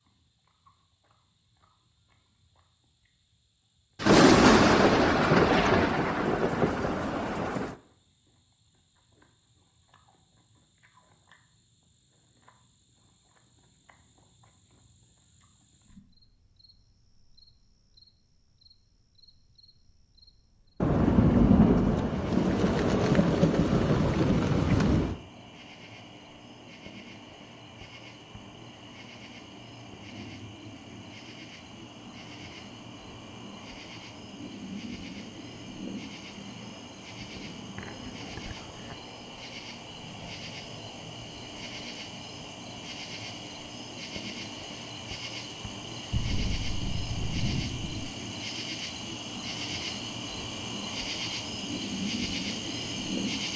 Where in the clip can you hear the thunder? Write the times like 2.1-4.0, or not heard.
4.0-7.8, 20.8-25.1, 46.1-48.1.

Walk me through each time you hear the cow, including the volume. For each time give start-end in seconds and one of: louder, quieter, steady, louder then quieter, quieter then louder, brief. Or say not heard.
not heard.